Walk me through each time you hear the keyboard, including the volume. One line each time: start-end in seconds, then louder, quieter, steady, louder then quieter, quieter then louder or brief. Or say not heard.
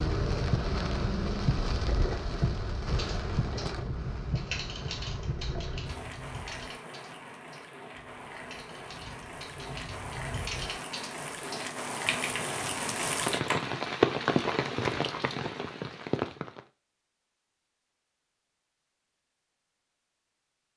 3.0-13.8 quieter then louder.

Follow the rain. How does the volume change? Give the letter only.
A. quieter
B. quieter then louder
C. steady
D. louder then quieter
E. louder
B.